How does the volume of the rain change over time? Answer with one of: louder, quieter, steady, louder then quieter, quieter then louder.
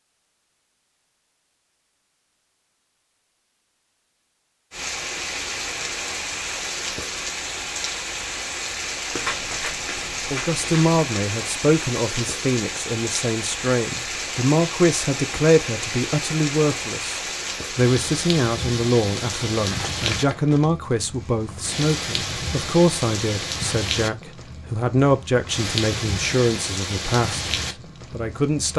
steady.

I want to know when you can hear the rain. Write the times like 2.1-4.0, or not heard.
4.7-28.7.